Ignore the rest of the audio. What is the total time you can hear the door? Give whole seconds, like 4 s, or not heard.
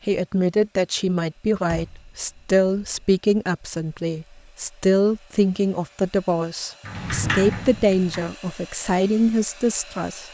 3 s.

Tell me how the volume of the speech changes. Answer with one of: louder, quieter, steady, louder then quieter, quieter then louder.
steady.